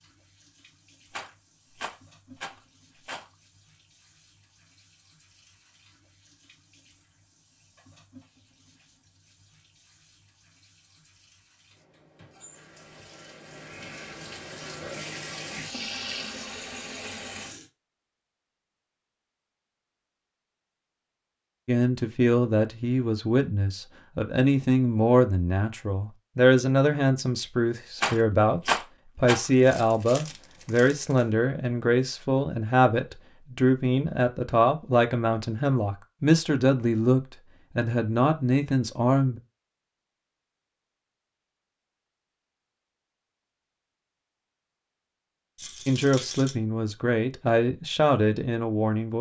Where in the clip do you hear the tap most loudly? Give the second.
16 s.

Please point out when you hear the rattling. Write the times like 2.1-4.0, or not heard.
1.1-3.2, 27.9-29.5, 45.5-46.5.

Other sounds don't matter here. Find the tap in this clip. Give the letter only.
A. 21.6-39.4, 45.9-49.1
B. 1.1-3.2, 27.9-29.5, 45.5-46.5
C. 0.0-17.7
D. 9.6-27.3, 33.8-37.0
C.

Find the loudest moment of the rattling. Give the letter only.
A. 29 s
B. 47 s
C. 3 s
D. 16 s
A.